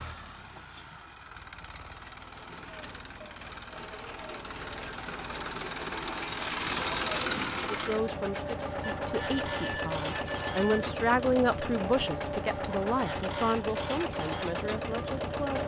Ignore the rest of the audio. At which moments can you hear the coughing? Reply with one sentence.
The coughing can't be heard in this clip.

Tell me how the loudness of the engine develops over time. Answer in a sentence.
The loudness of the engine goes up.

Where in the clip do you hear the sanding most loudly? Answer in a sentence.
The loudest moment of the sanding is at 7 seconds.